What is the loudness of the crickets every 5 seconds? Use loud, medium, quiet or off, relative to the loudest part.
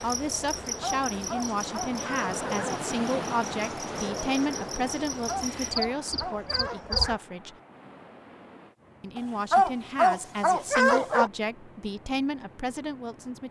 medium, loud, off.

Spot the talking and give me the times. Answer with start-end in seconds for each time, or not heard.
0.0-7.6, 9.0-13.4.